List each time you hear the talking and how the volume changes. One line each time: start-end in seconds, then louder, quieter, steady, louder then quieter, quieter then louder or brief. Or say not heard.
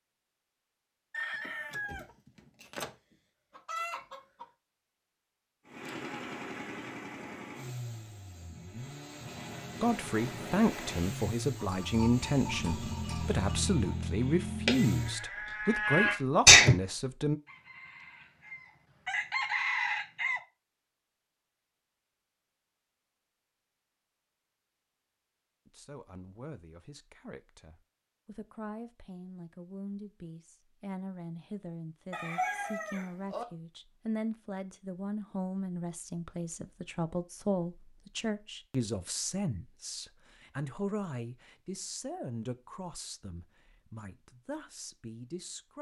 9.8-17.4 steady
25.6-45.7 louder then quieter.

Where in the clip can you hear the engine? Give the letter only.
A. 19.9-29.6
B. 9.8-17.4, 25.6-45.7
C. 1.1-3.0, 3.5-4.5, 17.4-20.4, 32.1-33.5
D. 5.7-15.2
D.